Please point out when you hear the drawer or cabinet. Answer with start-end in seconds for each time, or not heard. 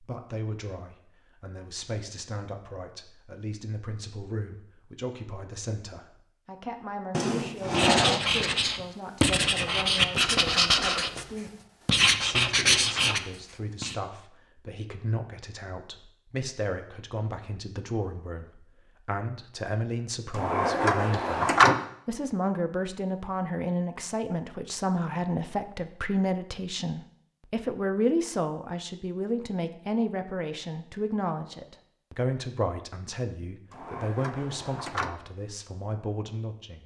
7.1-8.2, 20.4-21.8, 33.7-35.1.